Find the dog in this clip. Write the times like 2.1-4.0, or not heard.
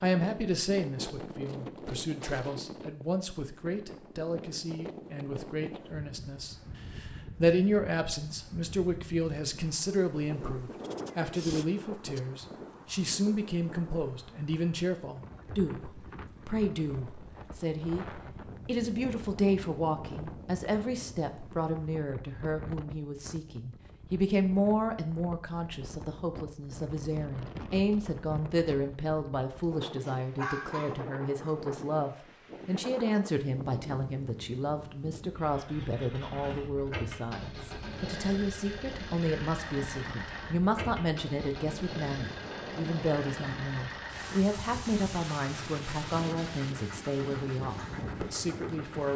30.1-31.6.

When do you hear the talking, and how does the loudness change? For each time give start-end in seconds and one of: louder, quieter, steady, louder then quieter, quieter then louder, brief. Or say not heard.
0.0-49.1 steady.